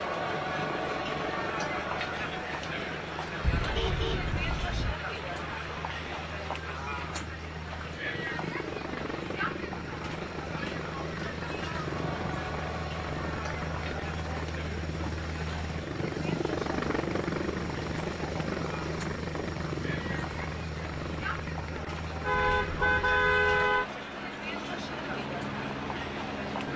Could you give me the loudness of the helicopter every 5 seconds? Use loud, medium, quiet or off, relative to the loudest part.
medium, medium, loud, loud, medium, loud.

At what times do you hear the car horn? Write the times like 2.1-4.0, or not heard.
3.4-5.0, 22.2-23.9.